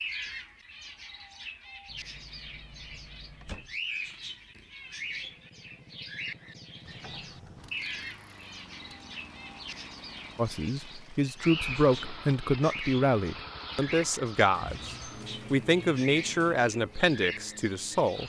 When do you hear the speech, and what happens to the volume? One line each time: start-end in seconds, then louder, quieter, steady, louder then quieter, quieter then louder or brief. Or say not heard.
10.3-18.2 steady.